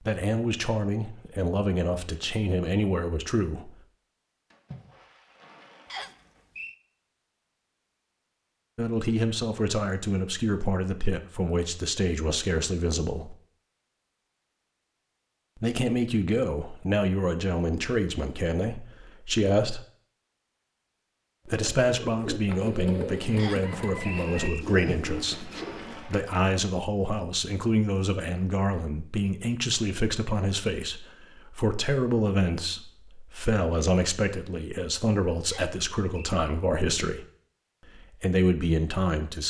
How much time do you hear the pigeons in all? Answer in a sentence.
The pigeons can be heard for 5 seconds in total.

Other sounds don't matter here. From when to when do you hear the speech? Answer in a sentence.
You can hear the speech from 0.1 to 3.8 s, from 8.8 to 13.3 s, from 15.6 to 19.9 s, from 21.4 to 37.2 s and from 38.0 to 39.4 s.